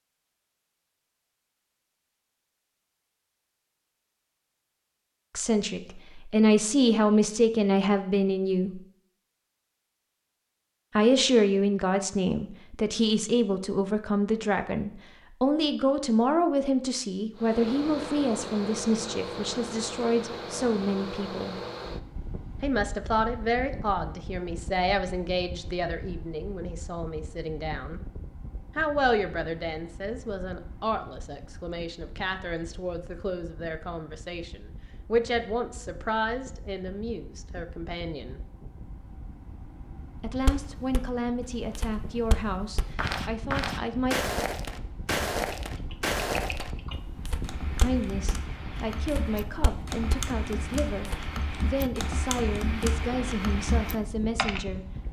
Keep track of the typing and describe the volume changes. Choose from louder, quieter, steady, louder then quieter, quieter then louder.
louder.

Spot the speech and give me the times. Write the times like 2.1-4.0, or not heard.
5.3-8.8, 10.9-21.6, 22.6-28.0, 28.8-38.4, 40.1-44.2, 47.8-54.9.